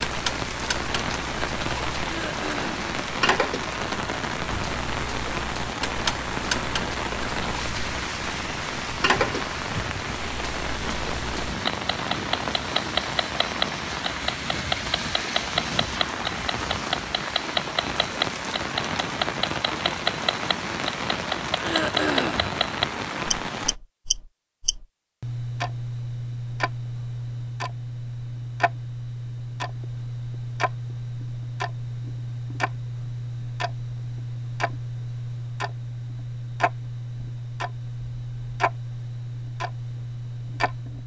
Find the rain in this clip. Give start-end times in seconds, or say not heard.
0.0-23.8.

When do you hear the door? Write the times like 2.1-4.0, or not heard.
not heard.